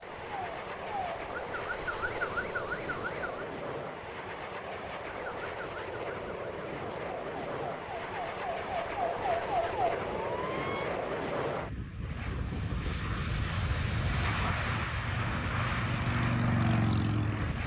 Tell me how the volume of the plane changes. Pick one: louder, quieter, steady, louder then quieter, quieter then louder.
louder.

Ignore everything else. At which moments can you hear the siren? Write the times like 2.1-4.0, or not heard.
0.0-3.5, 5.0-10.9.